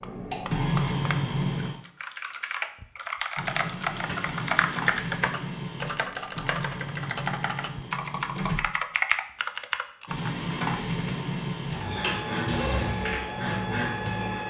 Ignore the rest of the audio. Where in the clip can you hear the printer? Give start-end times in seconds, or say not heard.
0.0-1.8, 3.4-8.6, 10.1-14.4.